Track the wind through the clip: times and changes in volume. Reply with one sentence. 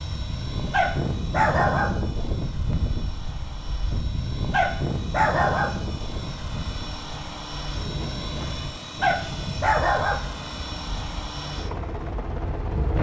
You can hear the wind from 0.0 to 12.9 s, getting quieter.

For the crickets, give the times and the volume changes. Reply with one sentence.
The crickets can't be heard in this clip.